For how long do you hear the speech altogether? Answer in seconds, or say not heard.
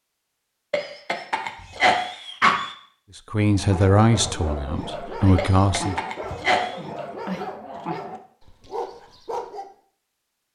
3 s.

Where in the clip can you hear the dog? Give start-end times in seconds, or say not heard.
3.5-9.7.